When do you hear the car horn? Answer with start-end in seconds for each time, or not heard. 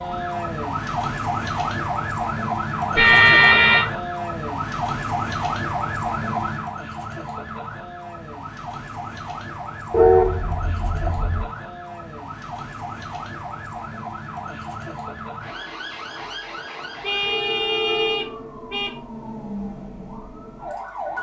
3.0-3.9, 9.9-11.4, 17.0-18.9.